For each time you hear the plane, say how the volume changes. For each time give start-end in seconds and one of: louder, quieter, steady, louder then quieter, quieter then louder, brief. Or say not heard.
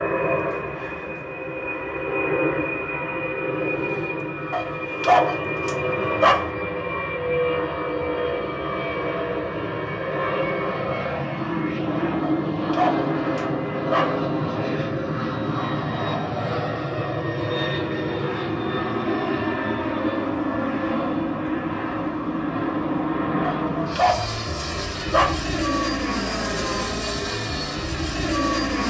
0.0-28.8 steady.